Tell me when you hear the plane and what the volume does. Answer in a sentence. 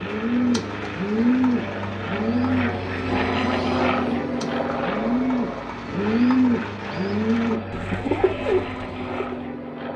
You can hear the plane from 0.0 to 9.9 s, getting louder then quieter.